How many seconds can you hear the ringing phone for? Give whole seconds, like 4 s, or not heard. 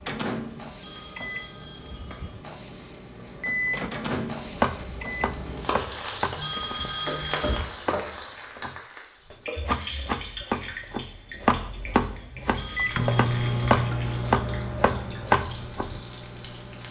4 s.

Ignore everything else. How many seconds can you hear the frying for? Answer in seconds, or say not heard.
17 s.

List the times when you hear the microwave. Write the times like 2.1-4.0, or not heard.
0.1-6.0, 12.8-16.8.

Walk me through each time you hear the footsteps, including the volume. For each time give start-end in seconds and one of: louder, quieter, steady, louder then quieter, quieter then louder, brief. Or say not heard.
not heard.